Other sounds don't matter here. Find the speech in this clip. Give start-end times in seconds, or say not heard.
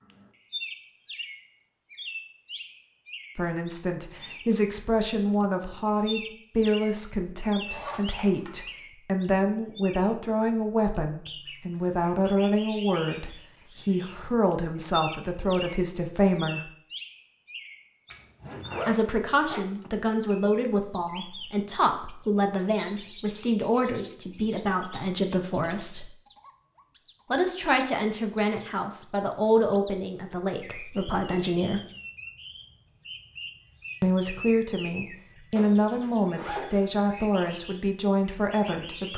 3.4-16.7, 18.9-26.1, 27.3-31.8, 34.0-39.1.